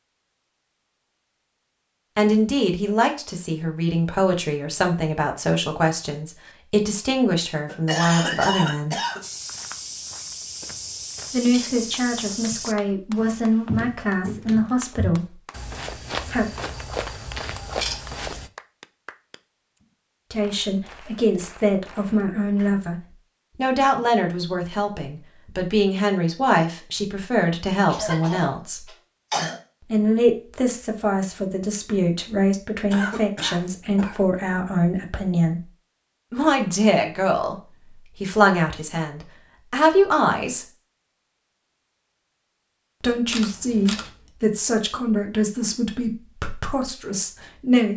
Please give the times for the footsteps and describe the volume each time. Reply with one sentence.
The footsteps can be heard from 9.2 to 18.5 s, at a steady volume.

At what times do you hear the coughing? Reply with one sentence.
The coughing can be heard from 7.7 to 9.2 s, from 27.9 to 29.6 s and from 32.9 to 34.1 s.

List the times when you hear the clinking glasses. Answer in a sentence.
You can't hear the clinking glasses here.